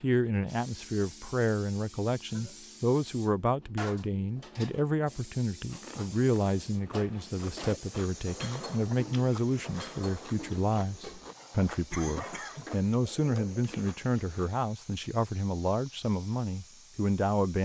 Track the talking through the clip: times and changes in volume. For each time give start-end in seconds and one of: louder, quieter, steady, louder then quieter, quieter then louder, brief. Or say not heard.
0.0-17.6 steady.